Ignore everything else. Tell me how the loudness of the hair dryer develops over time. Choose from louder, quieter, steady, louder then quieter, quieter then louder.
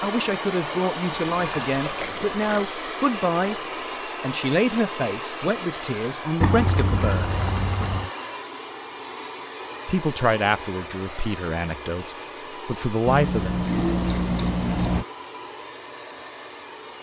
quieter.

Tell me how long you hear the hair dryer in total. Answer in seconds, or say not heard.
17 s.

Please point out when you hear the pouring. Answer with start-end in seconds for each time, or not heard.
1.1-2.4, 6.4-8.1, 13.1-15.1.